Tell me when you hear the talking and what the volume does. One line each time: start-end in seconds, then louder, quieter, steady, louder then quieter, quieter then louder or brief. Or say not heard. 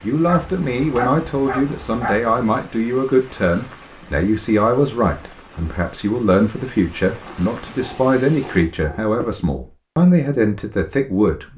0.0-11.5 steady.